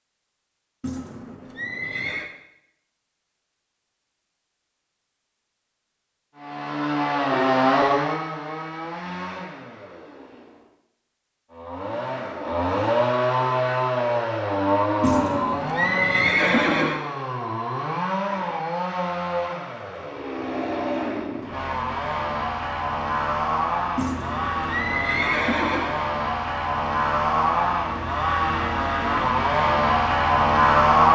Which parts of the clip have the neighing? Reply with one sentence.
You can hear the neighing from 0.8 to 2.2 s, from 15.0 to 17.0 s and from 23.9 to 25.9 s.